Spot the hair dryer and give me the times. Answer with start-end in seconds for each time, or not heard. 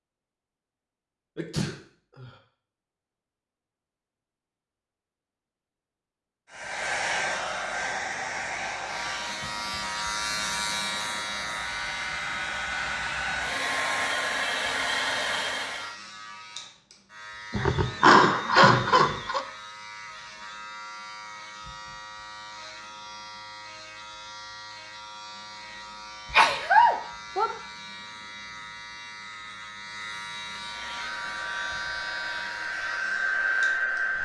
6.5-15.9, 30.6-34.2.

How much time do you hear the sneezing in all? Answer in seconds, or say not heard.
4 s.